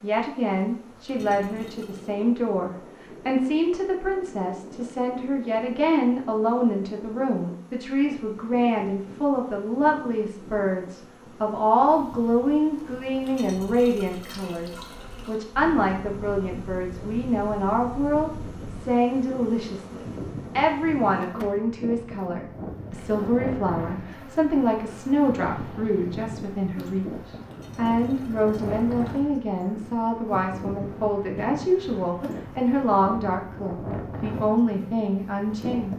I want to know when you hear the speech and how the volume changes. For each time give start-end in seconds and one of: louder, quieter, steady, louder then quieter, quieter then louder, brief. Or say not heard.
0.0-35.9 steady.